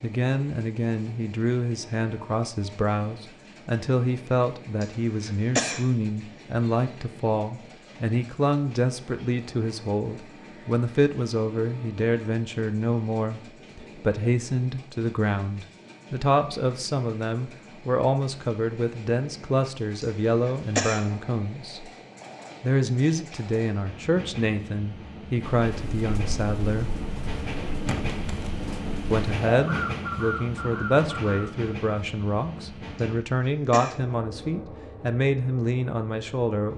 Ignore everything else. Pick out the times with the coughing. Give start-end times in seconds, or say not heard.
4.8-5.8, 20.0-21.1, 33.0-34.0.